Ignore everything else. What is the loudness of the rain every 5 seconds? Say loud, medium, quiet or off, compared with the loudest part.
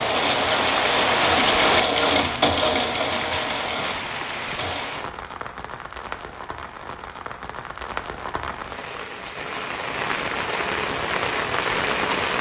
loud, medium, loud.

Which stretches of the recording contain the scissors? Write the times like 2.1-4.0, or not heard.
not heard.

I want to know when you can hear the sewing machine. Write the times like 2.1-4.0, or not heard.
0.0-5.0.